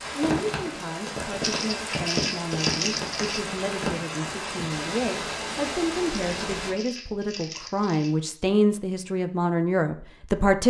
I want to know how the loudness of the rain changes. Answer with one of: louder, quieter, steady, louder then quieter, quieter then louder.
steady.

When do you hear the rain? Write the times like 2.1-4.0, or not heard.
0.0-6.8.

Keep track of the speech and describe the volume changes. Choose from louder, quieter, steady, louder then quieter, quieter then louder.
louder.